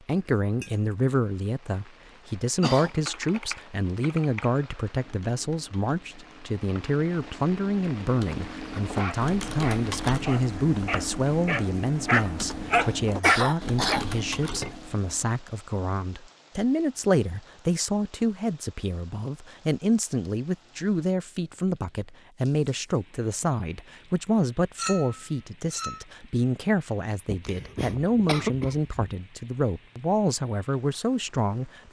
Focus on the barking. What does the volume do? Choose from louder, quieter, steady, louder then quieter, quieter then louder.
louder.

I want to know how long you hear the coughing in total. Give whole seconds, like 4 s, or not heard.
4 s.